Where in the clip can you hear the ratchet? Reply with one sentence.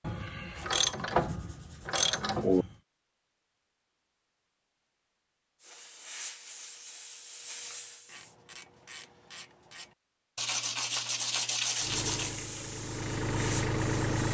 The ratchet can be heard from 0.0 to 2.7 s and from 8.1 to 9.9 s.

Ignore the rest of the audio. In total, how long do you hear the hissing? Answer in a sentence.
You can hear the hissing for 5 seconds altogether.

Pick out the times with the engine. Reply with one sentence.
You can hear the engine from 11.8 to 14.2 s.